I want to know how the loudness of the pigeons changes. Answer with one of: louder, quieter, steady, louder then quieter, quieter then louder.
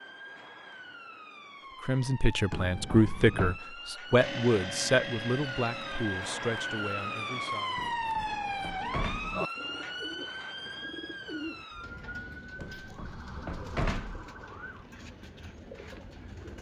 quieter.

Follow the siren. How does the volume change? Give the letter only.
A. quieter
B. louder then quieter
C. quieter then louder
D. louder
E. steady
B.